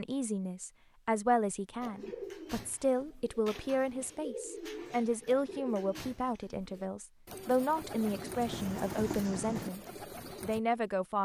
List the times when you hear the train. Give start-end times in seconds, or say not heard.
7.9-9.7.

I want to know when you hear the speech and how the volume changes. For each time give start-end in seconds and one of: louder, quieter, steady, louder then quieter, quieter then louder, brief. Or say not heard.
0.0-9.8 steady
10.4-11.2 brief.